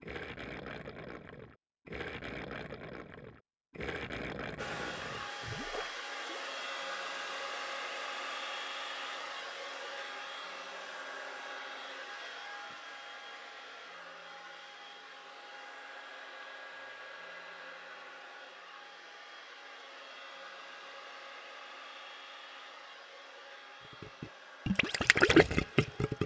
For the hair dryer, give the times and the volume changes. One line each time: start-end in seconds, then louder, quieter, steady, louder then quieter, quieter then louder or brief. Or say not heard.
4.5-26.2 quieter.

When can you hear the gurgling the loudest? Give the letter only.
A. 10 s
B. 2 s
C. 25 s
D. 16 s
C.